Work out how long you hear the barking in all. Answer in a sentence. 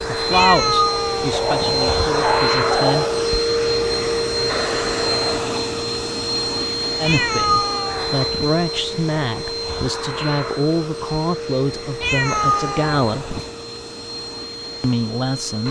The barking can be heard for 2 seconds in total.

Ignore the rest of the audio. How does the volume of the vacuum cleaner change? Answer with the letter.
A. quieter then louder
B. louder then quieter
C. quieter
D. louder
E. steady
C.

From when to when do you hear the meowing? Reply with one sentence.
The meowing can be heard from 0.3 to 1.8 s, from 7.0 to 8.6 s and from 12.0 to 13.5 s.